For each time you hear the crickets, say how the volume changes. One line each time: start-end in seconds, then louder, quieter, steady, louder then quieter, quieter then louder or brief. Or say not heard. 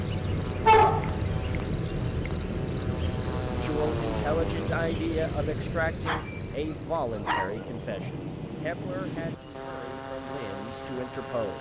0.0-11.5 quieter.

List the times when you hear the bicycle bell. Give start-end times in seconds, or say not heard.
6.2-7.0.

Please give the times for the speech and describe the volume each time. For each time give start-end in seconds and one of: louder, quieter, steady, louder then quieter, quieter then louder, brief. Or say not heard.
3.5-11.5 quieter.